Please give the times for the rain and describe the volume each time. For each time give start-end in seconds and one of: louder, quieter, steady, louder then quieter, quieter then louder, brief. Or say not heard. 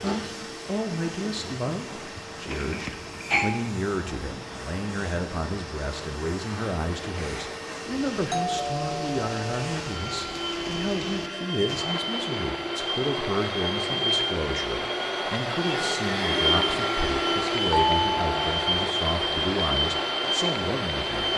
0.0-21.3 louder.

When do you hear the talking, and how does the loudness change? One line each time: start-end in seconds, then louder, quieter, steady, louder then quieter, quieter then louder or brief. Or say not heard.
0.0-21.3 steady.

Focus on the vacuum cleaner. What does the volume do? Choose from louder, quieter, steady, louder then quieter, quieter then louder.
louder.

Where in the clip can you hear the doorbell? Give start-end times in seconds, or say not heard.
2.5-3.6, 8.3-9.8, 17.7-18.6.